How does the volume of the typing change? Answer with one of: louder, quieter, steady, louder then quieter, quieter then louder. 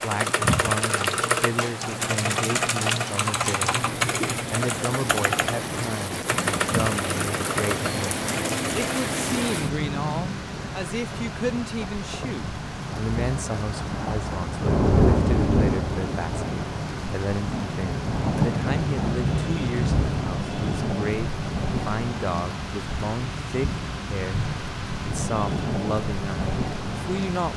quieter.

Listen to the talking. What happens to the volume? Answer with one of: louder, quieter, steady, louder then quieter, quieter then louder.
steady.